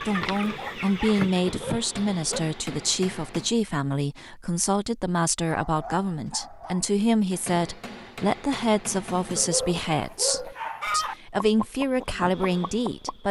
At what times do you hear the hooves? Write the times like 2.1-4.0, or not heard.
not heard.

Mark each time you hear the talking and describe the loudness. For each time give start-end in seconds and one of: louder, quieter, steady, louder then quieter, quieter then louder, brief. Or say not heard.
0.0-13.2 steady.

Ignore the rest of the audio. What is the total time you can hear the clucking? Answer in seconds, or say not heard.
5 s.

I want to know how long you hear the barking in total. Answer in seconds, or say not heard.
5 s.